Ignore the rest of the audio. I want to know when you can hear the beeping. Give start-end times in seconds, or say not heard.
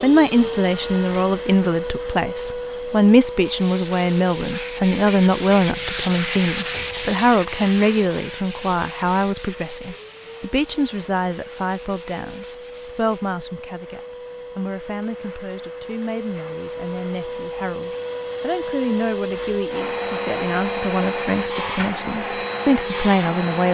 not heard.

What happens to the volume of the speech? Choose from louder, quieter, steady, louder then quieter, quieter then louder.
quieter then louder.